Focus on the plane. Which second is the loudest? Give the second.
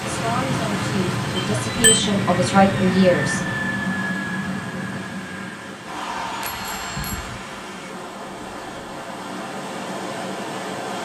3 s.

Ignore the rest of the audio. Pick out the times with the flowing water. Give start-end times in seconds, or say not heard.
0.0-11.0.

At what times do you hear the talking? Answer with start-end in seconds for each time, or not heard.
0.0-3.5.